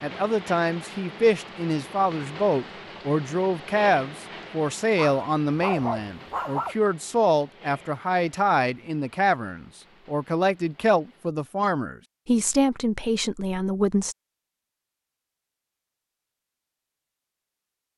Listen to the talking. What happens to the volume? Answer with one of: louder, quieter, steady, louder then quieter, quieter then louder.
steady.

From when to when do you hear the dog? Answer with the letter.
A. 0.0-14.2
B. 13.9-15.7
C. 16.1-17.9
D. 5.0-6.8
D.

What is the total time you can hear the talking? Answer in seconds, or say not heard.
14 s.